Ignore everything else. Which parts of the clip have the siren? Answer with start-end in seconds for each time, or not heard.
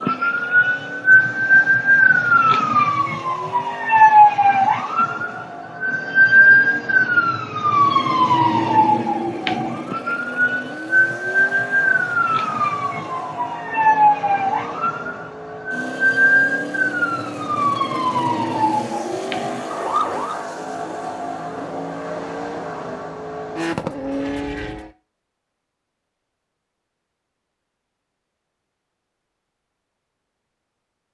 0.0-20.4.